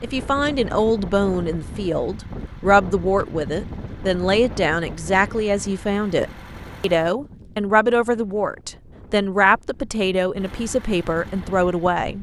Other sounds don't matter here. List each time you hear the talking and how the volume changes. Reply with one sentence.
You can hear the talking from 0.0 to 12.1 s, at a steady volume.